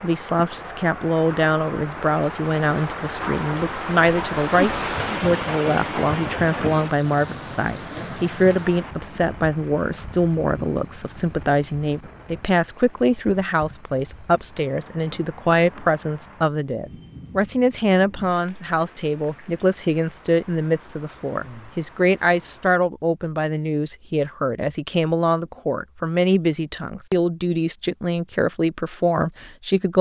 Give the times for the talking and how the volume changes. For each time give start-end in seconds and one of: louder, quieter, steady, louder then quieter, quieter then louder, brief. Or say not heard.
0.0-29.9 steady.